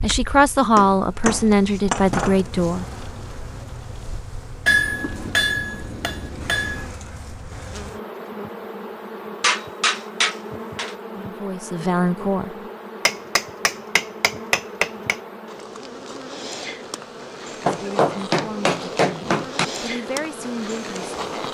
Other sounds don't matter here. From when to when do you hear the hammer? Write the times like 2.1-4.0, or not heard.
0.8-2.4, 4.7-6.9, 9.4-10.9, 13.1-15.2, 17.6-19.6.